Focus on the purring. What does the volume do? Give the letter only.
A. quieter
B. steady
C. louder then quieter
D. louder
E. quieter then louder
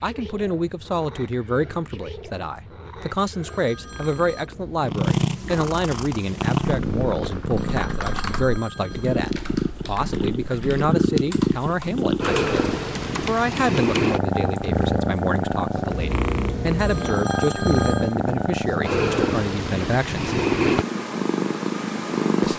D.